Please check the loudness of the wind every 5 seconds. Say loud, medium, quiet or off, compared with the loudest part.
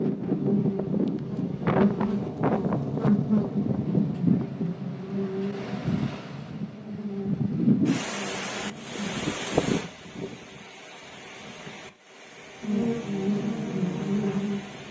loud, loud, quiet.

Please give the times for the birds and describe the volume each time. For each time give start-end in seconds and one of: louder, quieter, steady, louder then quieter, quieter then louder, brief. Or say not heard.
not heard.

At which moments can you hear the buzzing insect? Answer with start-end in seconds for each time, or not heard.
0.0-9.2, 12.6-14.8.